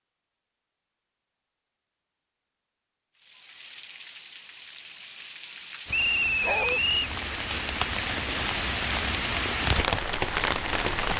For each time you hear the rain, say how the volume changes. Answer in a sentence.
The rain can be heard from 3.1 to 11.1 s, getting louder.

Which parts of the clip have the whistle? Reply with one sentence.
The whistle can be heard from 5.9 to 7.0 s.